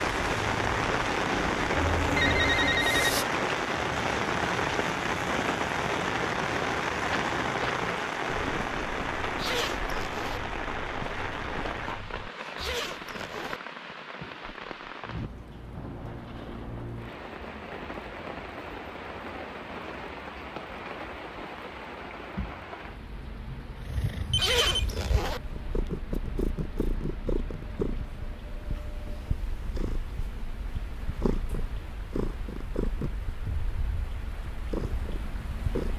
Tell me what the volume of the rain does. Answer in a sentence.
The volume of the rain goes down.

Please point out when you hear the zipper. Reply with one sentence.
You can hear the zipper from 9.3 to 10.4 s, from 12.6 to 13.6 s and from 24.4 to 25.4 s.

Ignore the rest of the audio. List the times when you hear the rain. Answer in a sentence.
You can hear the rain from 0.0 to 35.9 s.